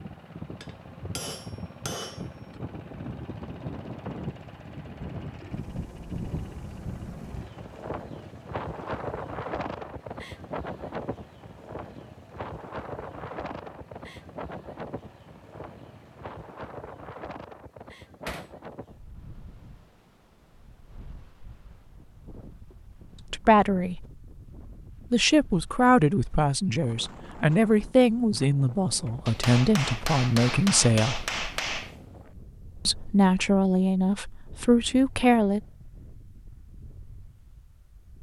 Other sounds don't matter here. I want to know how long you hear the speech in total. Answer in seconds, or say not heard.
10 s.